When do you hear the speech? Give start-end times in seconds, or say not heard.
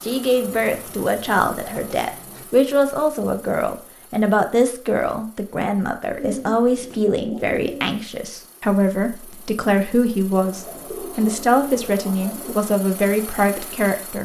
0.0-14.2.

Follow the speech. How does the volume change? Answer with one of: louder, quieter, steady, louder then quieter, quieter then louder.
steady.